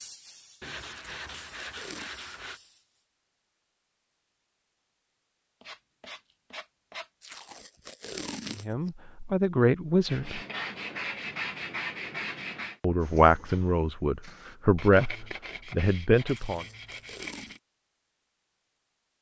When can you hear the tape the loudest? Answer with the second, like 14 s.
8 s.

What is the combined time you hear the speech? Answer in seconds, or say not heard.
6 s.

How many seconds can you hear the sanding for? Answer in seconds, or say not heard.
9 s.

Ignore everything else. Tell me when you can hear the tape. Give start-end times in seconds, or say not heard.
0.9-2.1, 7.2-8.9, 16.2-17.6.